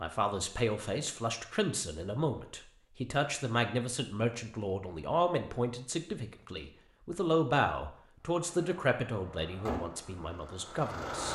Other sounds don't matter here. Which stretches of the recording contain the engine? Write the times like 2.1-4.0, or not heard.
8.2-11.3.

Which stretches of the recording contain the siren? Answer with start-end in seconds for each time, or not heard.
not heard.